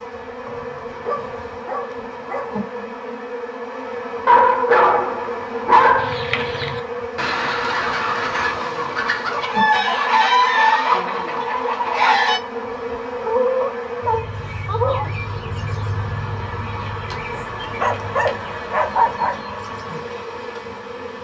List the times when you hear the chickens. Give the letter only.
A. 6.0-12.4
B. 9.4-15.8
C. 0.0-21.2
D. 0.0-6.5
A.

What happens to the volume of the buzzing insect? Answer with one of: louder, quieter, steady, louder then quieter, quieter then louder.
steady.